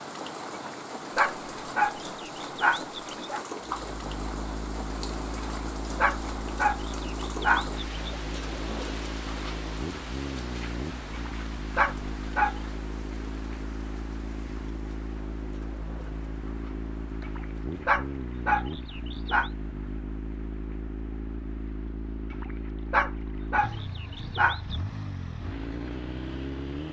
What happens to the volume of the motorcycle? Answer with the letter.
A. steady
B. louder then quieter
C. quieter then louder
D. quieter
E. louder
A.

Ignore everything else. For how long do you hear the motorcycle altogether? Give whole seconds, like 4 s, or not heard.
23 s.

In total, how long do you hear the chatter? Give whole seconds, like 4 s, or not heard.
not heard.